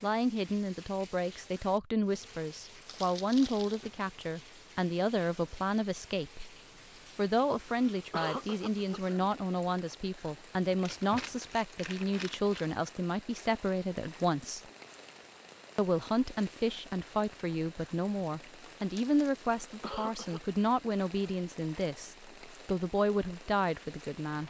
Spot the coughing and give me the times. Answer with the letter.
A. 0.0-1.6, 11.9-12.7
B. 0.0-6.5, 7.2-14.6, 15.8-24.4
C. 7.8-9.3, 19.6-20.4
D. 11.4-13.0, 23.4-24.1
C.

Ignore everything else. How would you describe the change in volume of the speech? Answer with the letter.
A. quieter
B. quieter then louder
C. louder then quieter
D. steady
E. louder
D.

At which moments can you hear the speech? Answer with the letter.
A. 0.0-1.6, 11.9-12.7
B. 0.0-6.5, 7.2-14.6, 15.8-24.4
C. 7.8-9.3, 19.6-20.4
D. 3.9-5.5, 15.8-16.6
B.